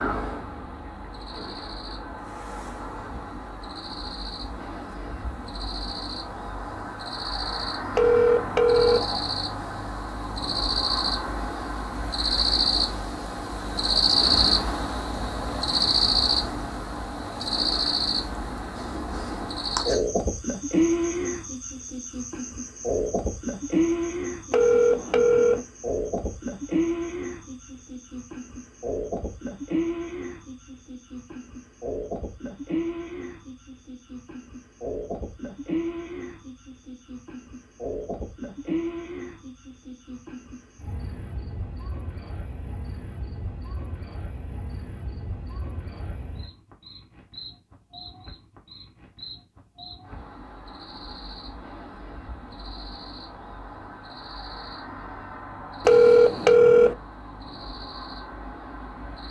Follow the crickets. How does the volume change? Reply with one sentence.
The loudness of the crickets goes up, then down.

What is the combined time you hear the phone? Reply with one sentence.
The phone can be heard for 3 seconds in total.